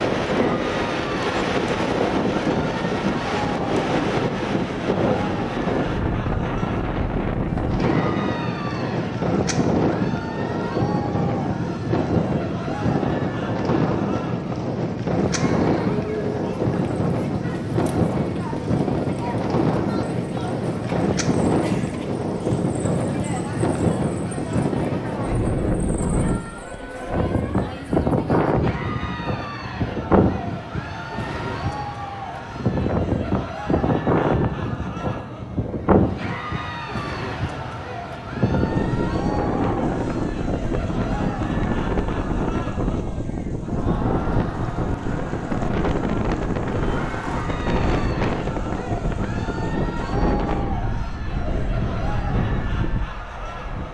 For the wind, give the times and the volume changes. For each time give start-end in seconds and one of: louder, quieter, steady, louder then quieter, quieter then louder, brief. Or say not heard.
0.0-53.8 steady.